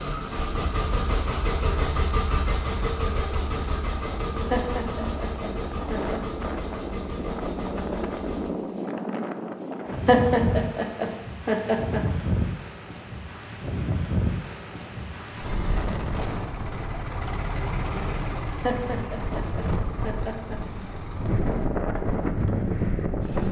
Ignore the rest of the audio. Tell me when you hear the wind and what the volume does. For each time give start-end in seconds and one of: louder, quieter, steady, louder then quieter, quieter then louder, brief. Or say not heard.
0.0-23.4 louder.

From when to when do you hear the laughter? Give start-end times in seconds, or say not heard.
4.5-6.2, 10.1-12.0, 18.6-20.6.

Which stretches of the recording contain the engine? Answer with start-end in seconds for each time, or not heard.
0.0-8.6, 15.3-23.4.